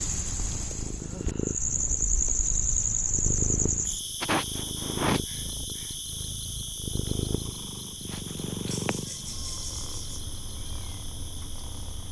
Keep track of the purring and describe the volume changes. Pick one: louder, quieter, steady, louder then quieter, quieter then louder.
quieter.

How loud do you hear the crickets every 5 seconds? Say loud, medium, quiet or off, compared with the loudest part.
loud, medium, quiet.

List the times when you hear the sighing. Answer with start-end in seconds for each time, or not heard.
1.0-1.8, 4.2-5.8, 8.7-10.2.